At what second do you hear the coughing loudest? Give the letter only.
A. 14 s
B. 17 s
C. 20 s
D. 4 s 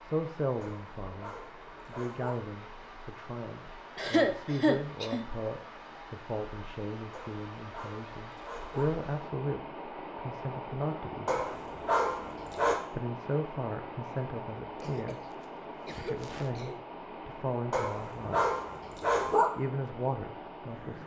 D.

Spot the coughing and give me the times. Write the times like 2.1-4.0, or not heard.
4.0-5.2, 14.8-16.8.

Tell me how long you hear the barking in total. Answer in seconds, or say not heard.
7 s.